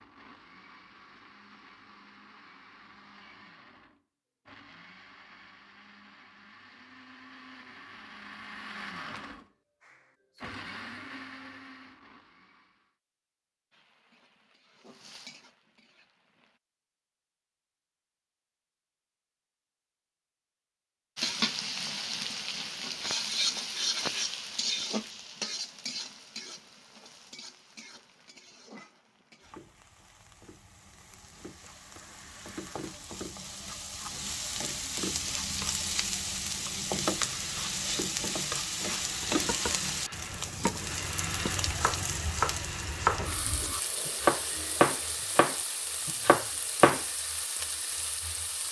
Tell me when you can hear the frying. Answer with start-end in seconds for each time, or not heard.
13.7-16.6, 21.1-48.6.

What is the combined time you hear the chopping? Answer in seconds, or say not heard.
8 s.